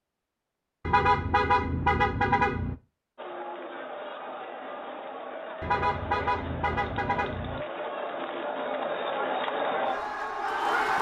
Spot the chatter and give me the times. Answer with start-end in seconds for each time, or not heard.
3.1-10.9.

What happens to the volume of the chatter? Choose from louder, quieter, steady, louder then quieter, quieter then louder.
louder.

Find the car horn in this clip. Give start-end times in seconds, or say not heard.
0.8-2.8, 5.6-7.7.